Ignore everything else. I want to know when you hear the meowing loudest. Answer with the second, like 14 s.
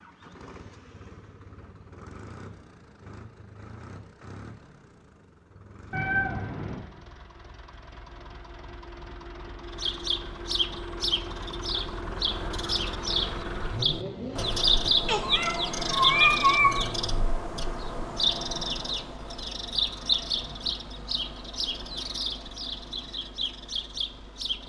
16 s.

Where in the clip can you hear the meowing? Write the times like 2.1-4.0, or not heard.
5.9-6.8, 15.1-16.8.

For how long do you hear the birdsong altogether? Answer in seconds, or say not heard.
15 s.